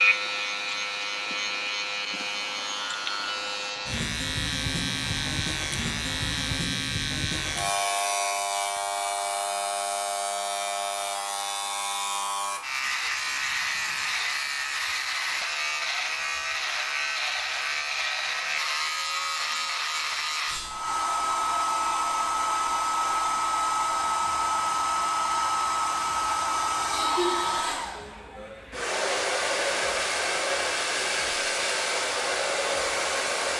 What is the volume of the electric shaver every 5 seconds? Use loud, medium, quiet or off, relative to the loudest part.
loud, loud, loud, loud, medium, quiet, quiet.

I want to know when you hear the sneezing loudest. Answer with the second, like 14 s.
27 s.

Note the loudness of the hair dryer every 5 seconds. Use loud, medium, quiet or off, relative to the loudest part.
quiet, quiet, quiet, quiet, loud, loud, loud.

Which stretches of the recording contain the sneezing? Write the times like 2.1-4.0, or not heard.
26.9-28.9.